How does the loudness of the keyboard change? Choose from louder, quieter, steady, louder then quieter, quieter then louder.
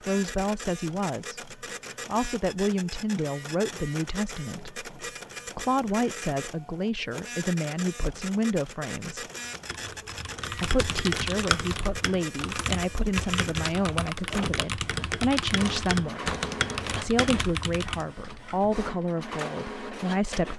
steady.